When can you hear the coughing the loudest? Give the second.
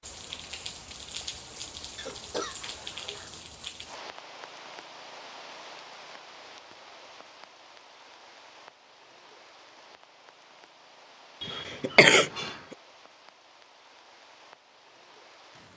12 s.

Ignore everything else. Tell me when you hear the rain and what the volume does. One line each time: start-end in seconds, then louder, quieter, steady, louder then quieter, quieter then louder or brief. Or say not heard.
0.0-15.7 quieter.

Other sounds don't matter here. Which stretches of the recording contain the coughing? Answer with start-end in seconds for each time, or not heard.
1.9-3.7, 11.4-12.6.